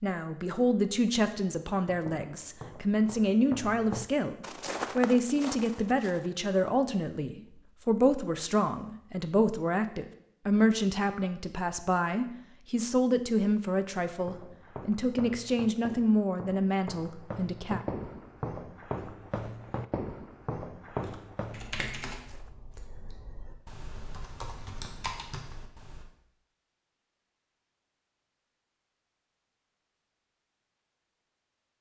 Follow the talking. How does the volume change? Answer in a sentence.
The loudness of the talking stays about the same.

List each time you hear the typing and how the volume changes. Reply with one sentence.
The typing can be heard from 21.0 to 26.1 s, getting quieter then louder.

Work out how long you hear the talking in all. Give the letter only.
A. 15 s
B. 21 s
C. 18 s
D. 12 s
C.